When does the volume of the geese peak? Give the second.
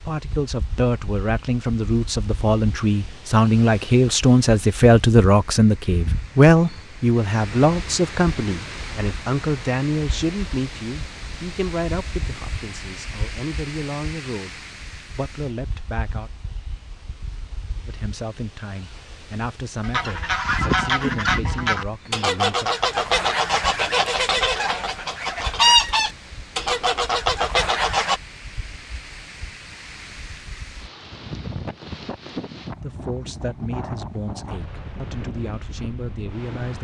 26 s.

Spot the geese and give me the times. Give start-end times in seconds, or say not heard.
19.8-28.2.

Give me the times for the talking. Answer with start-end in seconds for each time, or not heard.
0.1-16.3, 17.9-22.7, 32.8-36.7.